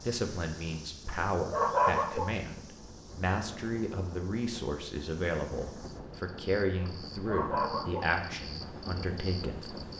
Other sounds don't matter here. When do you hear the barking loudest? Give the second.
2 s.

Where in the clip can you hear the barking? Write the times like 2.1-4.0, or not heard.
1.1-2.4, 6.8-8.2.